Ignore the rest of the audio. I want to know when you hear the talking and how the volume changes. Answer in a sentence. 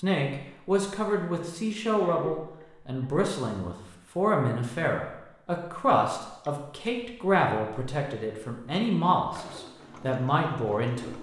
The talking can be heard from 0.0 to 11.1 s, at a steady volume.